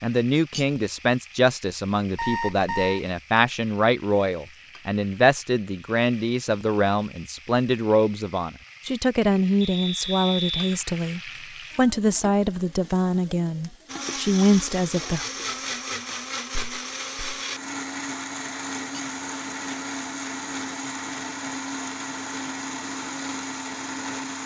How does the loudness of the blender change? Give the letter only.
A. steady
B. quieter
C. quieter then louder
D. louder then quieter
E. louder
A.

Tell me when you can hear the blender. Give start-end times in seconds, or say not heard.
13.8-24.4.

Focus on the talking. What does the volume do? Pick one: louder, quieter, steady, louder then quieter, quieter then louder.
steady.